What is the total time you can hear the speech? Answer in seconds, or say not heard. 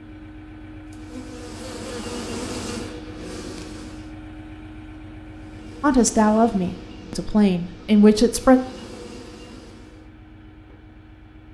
3 s.